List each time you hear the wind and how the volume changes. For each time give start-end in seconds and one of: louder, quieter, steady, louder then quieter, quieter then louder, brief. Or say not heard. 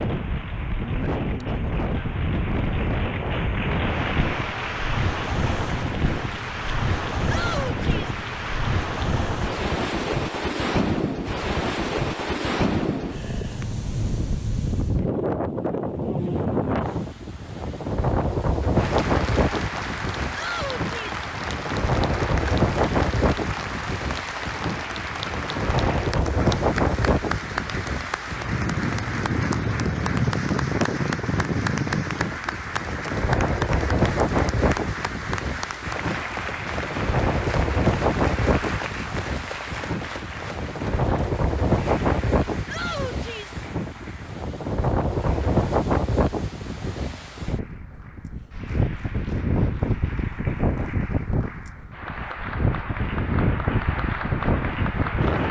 0.0-55.4 steady.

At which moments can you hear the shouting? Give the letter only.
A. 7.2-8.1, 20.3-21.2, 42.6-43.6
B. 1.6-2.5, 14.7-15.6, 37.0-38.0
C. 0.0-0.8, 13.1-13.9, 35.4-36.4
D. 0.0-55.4
A.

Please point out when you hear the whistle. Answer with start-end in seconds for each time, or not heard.
not heard.